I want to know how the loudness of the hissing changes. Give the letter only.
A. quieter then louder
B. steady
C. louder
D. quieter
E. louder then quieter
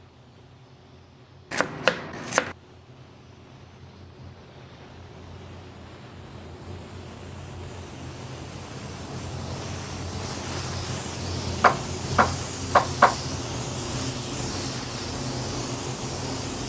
C.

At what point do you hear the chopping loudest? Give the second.
13 s.